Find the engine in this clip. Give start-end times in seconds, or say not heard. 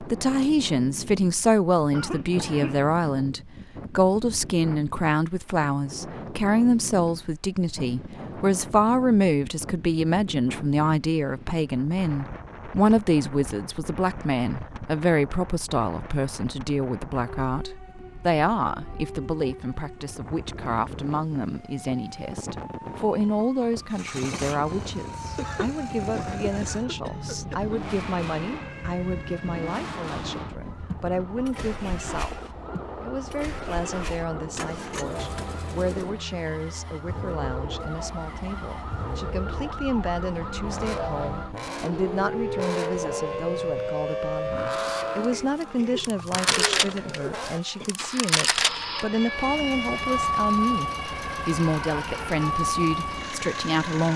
23.9-54.1.